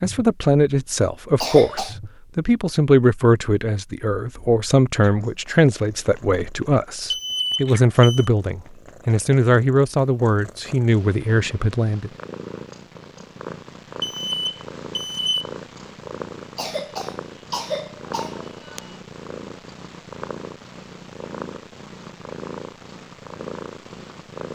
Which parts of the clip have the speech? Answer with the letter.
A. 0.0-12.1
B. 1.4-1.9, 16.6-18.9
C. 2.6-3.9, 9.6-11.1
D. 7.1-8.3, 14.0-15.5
A.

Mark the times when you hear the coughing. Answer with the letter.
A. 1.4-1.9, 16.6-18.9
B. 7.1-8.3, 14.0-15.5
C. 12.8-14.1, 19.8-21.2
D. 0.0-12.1
A.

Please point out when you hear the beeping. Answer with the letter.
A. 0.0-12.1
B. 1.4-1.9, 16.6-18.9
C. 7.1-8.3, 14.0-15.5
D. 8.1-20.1
C.